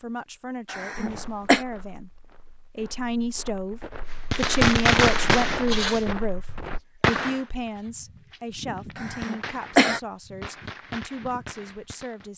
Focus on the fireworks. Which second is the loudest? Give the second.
5 s.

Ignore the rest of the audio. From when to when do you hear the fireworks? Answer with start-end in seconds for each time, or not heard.
4.3-12.3.